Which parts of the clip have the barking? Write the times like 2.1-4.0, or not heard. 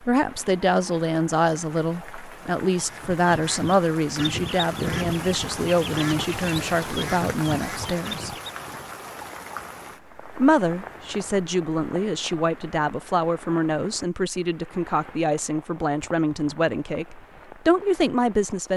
not heard.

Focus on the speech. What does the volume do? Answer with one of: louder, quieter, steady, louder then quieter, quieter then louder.
steady.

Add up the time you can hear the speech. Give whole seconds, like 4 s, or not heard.
17 s.